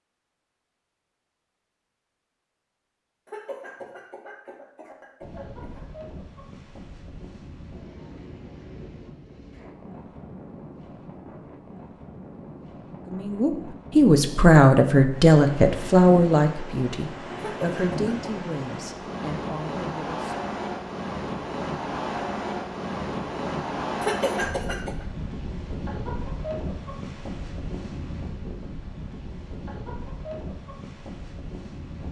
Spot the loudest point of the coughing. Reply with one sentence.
The volume of the coughing peaks at 24 seconds.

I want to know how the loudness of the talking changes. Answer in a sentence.
The volume of the talking goes down.